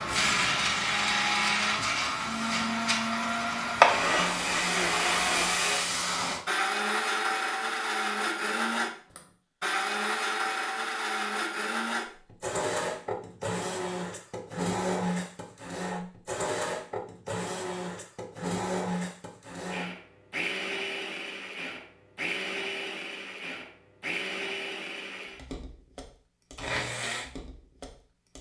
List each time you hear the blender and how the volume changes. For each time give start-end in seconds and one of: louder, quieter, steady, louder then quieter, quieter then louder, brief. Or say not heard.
0.0-28.3 quieter.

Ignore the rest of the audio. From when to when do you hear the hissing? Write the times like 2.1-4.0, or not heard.
0.0-6.5.